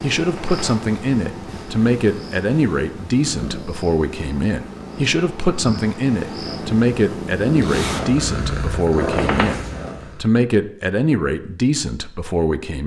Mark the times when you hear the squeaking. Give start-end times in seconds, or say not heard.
0.1-0.8, 8.9-9.7.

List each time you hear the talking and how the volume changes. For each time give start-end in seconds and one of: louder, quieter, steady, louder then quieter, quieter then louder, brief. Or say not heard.
0.0-12.8 steady.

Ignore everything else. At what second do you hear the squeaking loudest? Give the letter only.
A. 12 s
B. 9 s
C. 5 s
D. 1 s
B.